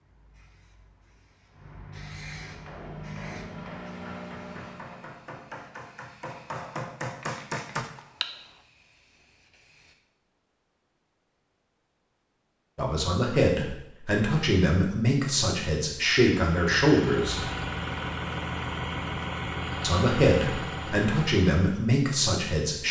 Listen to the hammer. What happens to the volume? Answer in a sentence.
The loudness of the hammer goes up.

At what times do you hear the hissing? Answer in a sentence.
The hissing can be heard from 0.0 to 9.9 s.